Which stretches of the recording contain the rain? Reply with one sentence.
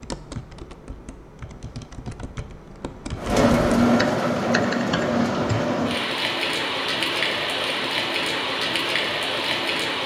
The rain can be heard from 3.1 to 10.0 s.